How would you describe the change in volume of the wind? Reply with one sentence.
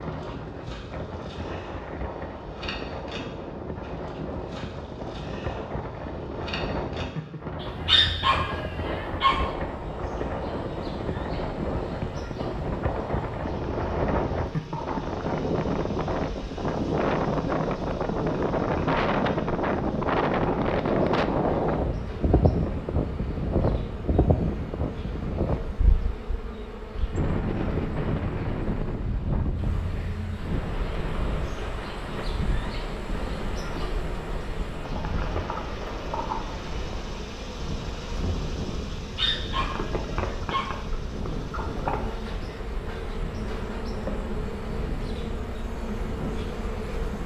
The volume of the wind goes up, then down.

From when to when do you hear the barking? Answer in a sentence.
You can hear the barking from 7.6 to 9.4 s and from 39.1 to 40.8 s.